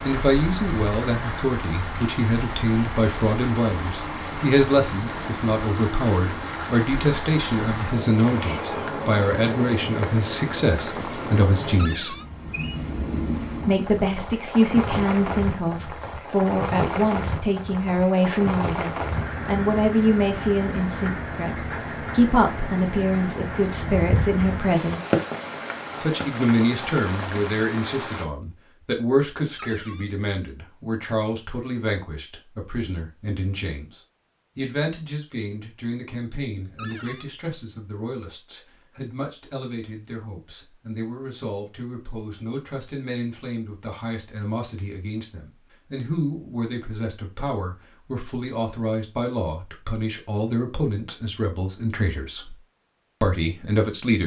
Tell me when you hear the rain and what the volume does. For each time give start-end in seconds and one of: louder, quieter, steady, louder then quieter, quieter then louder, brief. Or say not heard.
0.0-28.2 steady.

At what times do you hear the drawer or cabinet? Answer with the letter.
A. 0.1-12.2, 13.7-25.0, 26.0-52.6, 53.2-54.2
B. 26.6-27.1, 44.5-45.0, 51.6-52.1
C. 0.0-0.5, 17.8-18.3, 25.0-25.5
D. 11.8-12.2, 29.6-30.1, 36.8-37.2
D.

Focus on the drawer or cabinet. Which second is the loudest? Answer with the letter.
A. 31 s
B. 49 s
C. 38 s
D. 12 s
D.